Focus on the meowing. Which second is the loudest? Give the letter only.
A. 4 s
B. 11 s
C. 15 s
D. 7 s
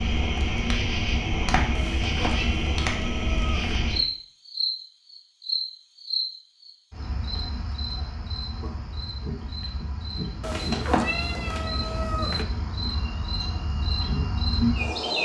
B.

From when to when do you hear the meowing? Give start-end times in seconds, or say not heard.
1.8-3.8, 10.4-12.4.